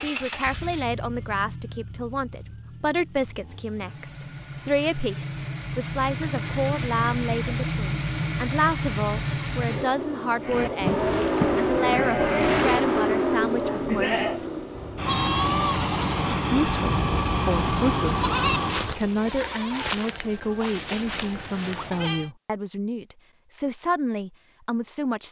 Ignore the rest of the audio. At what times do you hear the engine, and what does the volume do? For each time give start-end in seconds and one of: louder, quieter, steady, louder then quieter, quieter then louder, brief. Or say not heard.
0.0-18.9 louder.